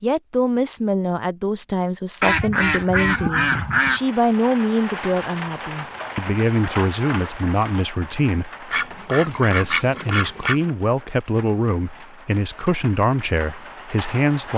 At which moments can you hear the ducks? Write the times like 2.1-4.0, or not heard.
2.2-4.0, 8.7-10.7.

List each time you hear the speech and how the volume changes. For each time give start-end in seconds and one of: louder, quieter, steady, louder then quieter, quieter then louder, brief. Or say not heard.
0.0-14.5 steady.